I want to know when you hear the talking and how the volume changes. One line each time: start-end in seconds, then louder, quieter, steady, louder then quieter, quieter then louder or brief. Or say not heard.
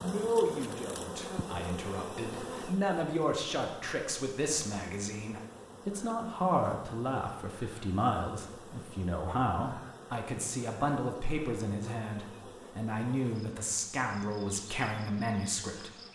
0.0-15.9 steady.